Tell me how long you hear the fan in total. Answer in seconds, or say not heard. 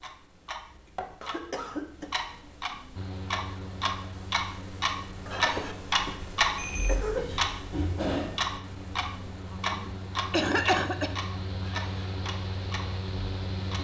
11 s.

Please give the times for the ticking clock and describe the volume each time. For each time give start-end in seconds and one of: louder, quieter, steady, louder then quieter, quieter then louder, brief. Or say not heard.
0.0-13.8 louder then quieter.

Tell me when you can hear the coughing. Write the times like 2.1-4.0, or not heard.
1.2-2.1, 5.2-7.2, 9.5-11.2.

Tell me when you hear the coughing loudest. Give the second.
11 s.